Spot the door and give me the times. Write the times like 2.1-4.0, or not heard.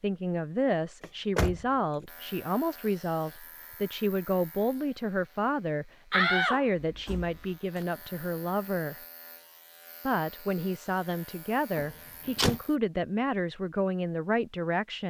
1.0-2.0, 6.1-7.8, 11.8-12.6.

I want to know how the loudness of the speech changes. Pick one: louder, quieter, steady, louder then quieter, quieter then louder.
steady.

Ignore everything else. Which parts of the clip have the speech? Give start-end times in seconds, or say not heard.
0.0-8.9, 10.1-15.0.